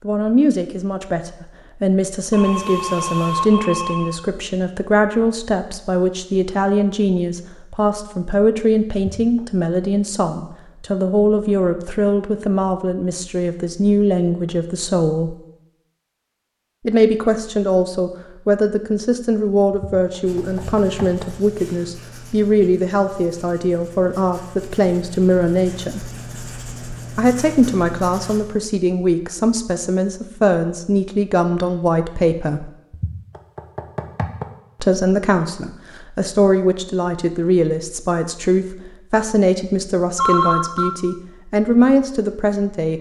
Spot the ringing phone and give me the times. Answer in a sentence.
You can hear the ringing phone from 2.3 to 4.2 s and from 40.1 to 40.9 s.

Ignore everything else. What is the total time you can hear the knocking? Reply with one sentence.
The knocking can be heard for 4 seconds in total.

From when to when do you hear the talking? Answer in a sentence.
The talking can be heard from 0.0 to 15.3 s, from 16.9 to 26.1 s, from 27.1 to 32.7 s and from 34.8 to 42.9 s.